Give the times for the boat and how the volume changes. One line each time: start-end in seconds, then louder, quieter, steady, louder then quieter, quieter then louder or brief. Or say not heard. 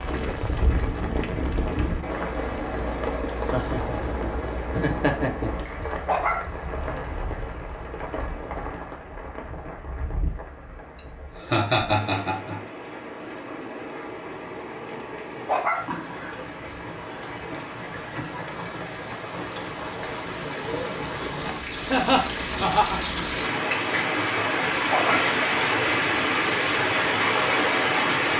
not heard.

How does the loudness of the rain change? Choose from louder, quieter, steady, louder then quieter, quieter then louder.
quieter then louder.